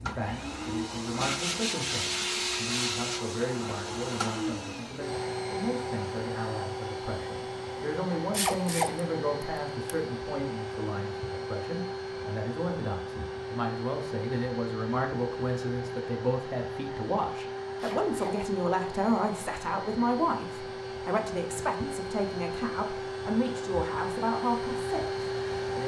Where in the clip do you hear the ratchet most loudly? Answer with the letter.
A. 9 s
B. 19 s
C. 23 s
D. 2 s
A.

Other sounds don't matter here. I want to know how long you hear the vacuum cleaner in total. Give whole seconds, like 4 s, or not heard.
26 s.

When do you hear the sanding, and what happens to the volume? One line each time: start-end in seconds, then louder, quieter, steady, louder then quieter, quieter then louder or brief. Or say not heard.
not heard.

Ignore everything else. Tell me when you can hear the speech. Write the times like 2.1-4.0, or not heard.
0.0-25.8.